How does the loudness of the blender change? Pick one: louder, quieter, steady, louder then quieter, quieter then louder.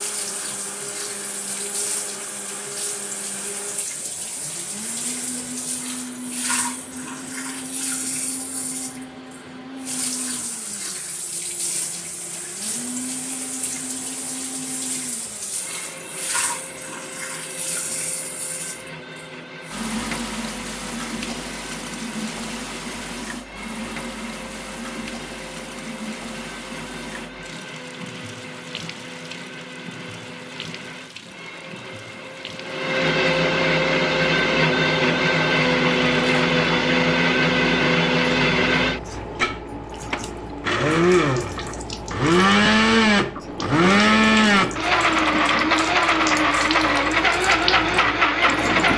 louder.